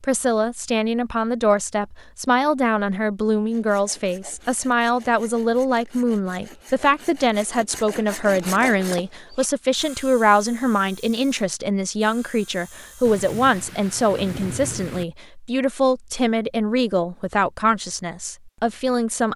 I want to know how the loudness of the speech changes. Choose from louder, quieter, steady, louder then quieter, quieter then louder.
steady.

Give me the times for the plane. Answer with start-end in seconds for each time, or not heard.
not heard.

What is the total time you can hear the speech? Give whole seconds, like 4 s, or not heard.
19 s.